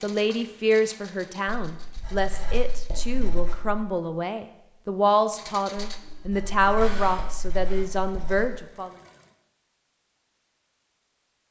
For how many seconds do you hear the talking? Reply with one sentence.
The talking can be heard for 9 seconds in total.